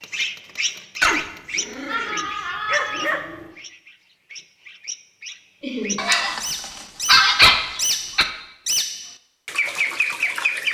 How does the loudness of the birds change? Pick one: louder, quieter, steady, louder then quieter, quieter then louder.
quieter then louder.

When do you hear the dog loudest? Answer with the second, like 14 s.
7 s.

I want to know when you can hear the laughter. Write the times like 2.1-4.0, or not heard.
1.9-3.2, 5.6-6.0.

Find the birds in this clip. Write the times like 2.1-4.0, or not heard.
0.0-10.6.